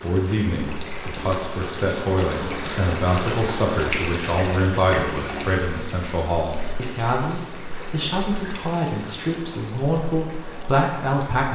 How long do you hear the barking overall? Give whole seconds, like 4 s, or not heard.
not heard.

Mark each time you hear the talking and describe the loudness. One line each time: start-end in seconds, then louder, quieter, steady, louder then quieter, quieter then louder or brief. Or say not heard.
0.0-11.5 steady.